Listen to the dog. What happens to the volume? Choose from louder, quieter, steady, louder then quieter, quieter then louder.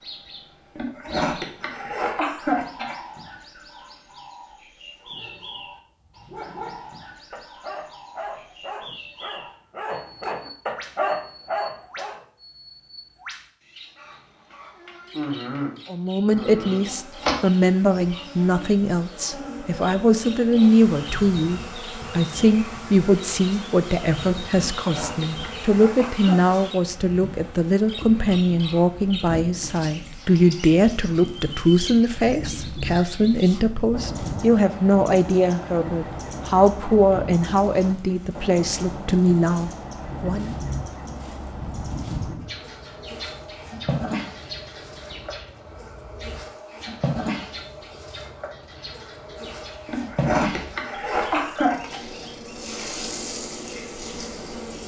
louder.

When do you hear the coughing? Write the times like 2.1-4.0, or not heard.
0.8-3.0, 24.8-26.4, 49.9-52.0.